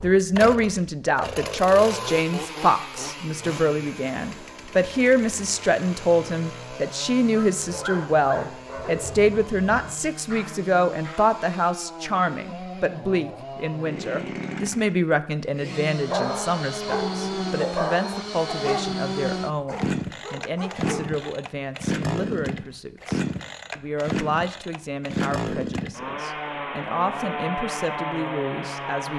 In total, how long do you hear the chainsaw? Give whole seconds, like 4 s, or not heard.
29 s.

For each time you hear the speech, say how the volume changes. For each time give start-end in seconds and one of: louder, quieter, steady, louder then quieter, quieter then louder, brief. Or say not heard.
0.0-29.1 quieter.